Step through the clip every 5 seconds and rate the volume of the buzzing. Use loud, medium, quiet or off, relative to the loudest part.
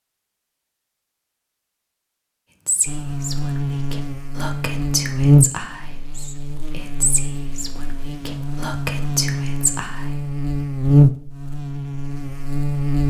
medium, loud, loud.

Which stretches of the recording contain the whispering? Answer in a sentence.
You can hear the whispering from 2.6 to 10.1 s.